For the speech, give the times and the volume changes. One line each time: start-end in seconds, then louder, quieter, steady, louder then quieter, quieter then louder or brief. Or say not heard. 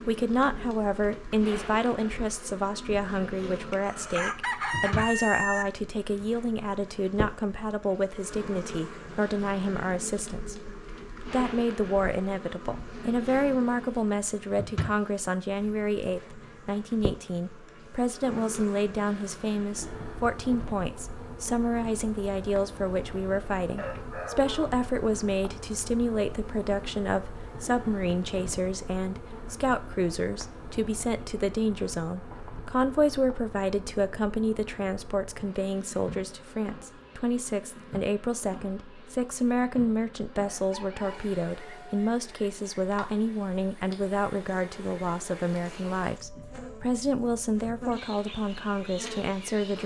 0.1-49.8 steady.